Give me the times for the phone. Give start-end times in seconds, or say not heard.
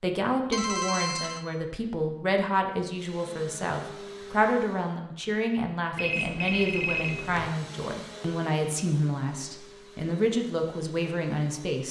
0.5-1.4, 6.0-7.5.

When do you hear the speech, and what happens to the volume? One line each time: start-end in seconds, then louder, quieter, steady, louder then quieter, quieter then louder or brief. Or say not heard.
0.0-11.8 steady.